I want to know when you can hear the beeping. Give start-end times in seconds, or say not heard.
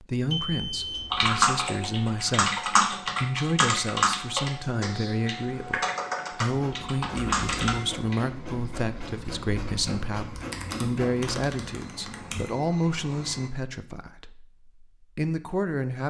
0.3-1.3, 7.1-7.8, 11.4-13.5.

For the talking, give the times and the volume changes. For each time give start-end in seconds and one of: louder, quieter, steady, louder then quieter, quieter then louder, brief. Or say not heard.
0.0-16.0 steady.